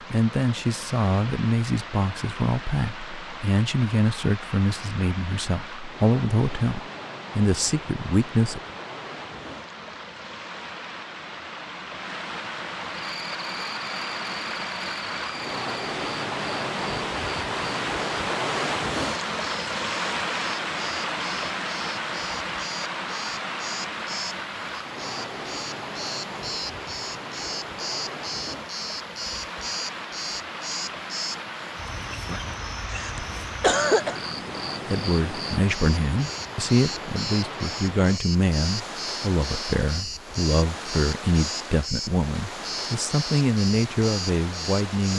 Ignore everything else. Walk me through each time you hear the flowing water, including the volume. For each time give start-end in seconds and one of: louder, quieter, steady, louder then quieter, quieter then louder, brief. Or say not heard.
0.0-45.1 louder then quieter.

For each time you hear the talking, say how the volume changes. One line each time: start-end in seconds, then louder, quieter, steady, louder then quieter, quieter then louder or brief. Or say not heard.
0.1-8.6 steady
34.9-45.1 steady.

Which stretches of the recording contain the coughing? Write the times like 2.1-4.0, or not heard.
32.9-34.2.